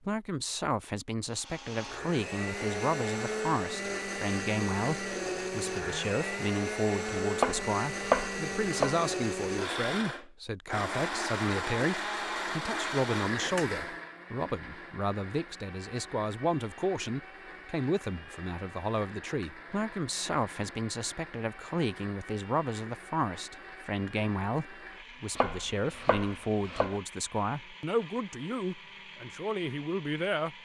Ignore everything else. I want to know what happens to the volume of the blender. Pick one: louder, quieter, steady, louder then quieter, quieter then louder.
quieter.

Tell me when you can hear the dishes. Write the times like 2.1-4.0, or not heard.
not heard.